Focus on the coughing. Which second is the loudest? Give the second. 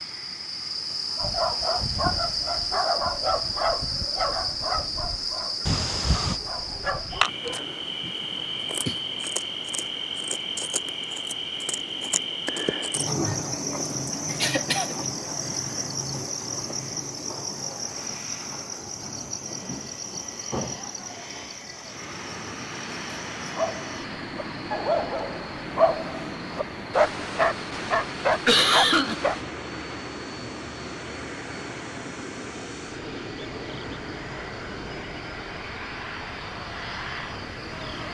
29 s.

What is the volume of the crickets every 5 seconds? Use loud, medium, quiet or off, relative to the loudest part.
loud, loud, loud, loud, medium, quiet, quiet, quiet.